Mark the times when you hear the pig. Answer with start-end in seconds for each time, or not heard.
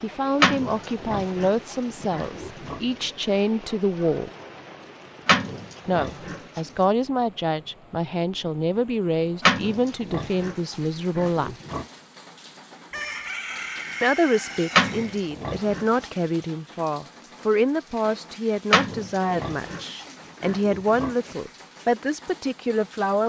0.4-2.8, 5.2-6.6, 9.4-11.8, 14.7-16.1, 18.7-21.4.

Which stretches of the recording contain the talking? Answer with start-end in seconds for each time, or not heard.
0.0-4.3, 5.8-11.6, 14.0-23.2.